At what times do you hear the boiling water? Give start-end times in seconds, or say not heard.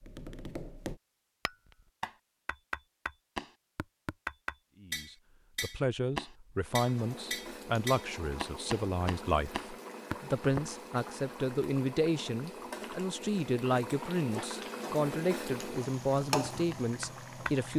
6.5-17.7.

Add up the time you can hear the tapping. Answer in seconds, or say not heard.
12 s.